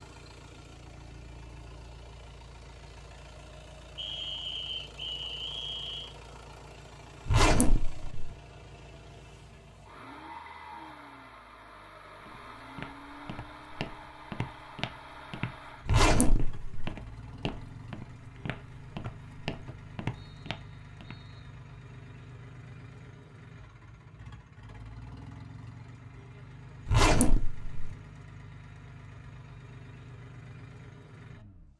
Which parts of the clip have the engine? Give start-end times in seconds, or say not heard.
0.0-31.7.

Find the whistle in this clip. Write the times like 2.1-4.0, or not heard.
4.0-6.2, 19.0-21.4.